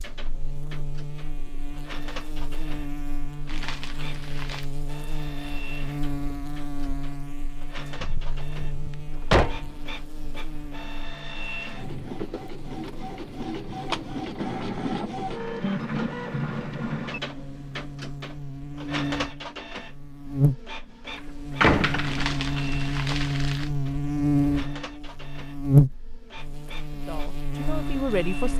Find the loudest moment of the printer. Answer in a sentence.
The volume of the printer peaks at 16 seconds.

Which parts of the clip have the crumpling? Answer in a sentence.
The crumpling can be heard from 3.5 to 4.7 s and from 22.1 to 23.7 s.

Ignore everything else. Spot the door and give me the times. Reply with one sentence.
The door can be heard from 8.0 to 9.7 s and from 21.6 to 22.2 s.